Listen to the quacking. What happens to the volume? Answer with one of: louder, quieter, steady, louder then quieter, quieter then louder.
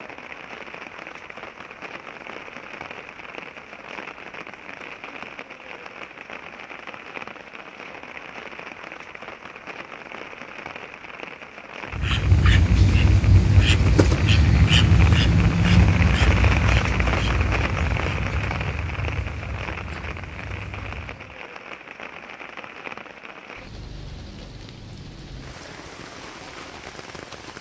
quieter.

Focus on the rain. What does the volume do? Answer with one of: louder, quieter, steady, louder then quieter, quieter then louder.
louder then quieter.